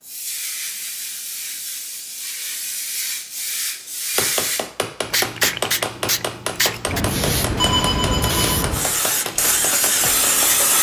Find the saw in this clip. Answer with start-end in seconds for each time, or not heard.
not heard.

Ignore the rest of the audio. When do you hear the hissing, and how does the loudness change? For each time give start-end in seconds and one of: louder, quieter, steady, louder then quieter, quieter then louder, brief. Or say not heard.
0.0-10.7 louder.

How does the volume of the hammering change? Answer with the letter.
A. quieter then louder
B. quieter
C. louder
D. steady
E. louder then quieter
B.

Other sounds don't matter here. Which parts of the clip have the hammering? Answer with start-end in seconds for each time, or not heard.
4.2-10.7.